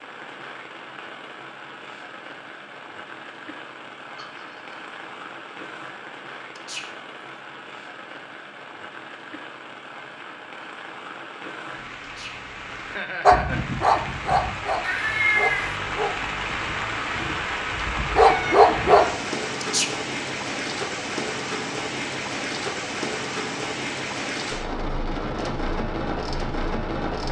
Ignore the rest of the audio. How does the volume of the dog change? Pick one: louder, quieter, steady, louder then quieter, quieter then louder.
quieter then louder.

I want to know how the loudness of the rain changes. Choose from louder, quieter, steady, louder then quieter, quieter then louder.
louder.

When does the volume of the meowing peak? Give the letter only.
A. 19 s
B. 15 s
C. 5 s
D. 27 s
B.